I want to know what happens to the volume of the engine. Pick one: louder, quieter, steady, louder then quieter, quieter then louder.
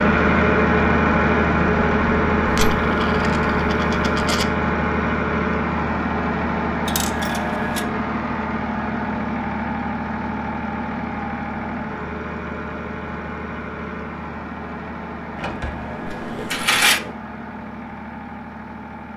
quieter.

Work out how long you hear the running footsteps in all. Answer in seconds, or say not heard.
not heard.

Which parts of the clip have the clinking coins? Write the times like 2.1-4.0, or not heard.
2.5-4.5, 6.8-7.8, 16.1-17.0.